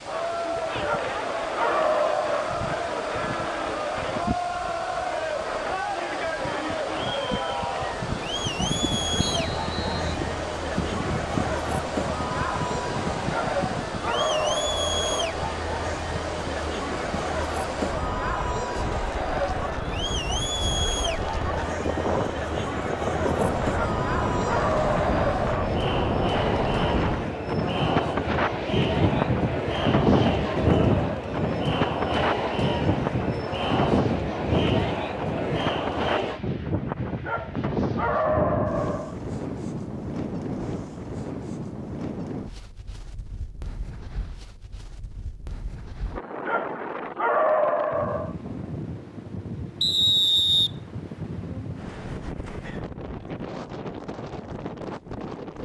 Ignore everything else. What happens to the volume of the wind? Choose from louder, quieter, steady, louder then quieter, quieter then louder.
louder then quieter.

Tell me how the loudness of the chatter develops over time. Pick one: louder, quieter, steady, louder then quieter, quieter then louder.
steady.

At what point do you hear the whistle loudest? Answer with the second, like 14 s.
50 s.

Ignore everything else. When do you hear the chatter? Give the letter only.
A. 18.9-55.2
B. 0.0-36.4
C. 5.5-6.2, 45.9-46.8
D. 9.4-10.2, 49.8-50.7
B.